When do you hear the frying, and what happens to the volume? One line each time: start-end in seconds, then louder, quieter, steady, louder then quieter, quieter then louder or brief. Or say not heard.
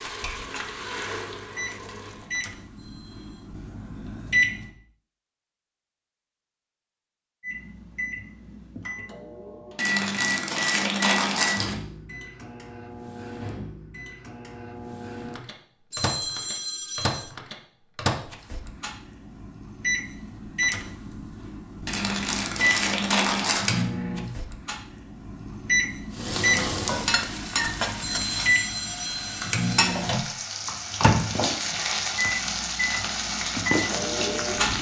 0.0-2.3 brief
26.1-34.7 quieter then louder.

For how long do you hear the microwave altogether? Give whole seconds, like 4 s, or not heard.
32 s.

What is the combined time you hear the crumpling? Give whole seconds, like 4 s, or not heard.
4 s.